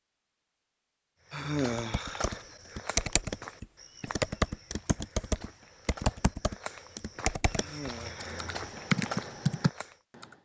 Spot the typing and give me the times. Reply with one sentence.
The typing can be heard from 1.8 to 10.2 s.